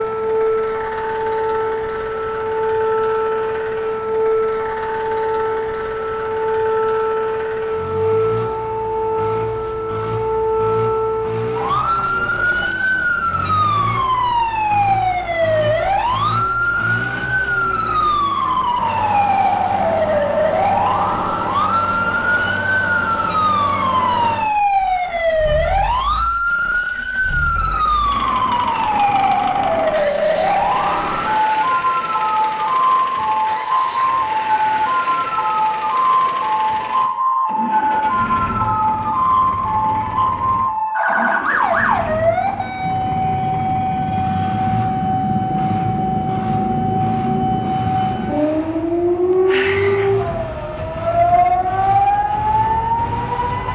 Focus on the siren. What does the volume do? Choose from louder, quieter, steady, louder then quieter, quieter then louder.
steady.